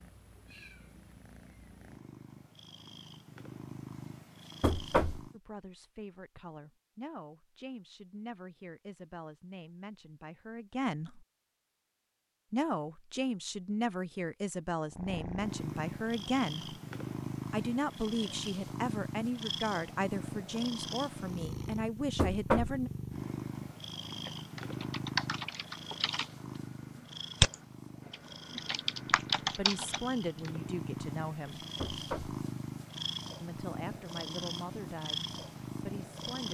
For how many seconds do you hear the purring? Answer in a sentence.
The purring can be heard for 27 seconds in total.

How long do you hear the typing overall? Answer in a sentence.
The typing can be heard for 6 seconds in total.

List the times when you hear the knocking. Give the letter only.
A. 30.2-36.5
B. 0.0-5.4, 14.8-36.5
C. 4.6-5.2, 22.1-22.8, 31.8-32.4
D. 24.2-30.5
C.